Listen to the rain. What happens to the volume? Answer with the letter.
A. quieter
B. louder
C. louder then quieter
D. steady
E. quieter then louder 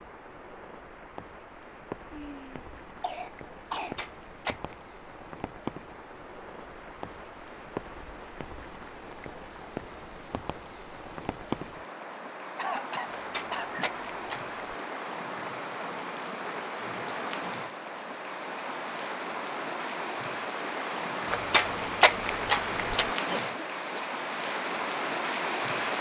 B.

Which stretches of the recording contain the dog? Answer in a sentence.
The dog can't be heard in this clip.